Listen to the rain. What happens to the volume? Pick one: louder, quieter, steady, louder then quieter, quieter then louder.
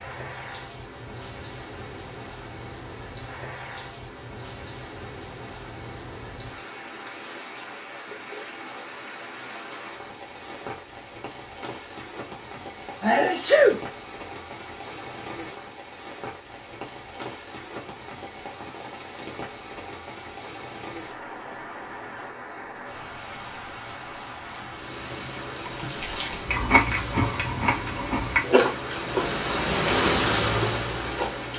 louder.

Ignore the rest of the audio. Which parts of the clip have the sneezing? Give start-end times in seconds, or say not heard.
13.0-13.8.